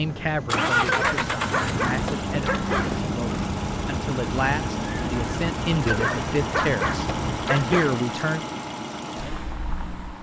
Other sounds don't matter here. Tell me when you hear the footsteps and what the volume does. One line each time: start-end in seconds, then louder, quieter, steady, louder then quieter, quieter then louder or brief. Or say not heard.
not heard.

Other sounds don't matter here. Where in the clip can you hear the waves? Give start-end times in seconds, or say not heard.
0.0-7.4.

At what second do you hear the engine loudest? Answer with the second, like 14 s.
1 s.